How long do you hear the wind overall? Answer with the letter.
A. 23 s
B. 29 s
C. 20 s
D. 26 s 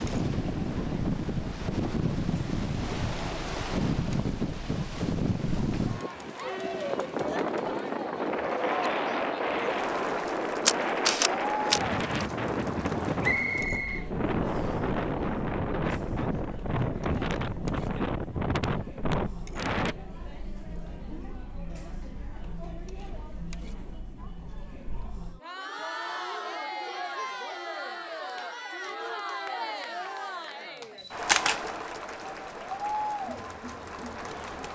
C.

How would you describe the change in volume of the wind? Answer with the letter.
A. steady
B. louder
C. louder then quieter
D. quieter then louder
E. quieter
A.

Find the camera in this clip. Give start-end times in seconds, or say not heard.
10.7-12.2, 30.9-31.6.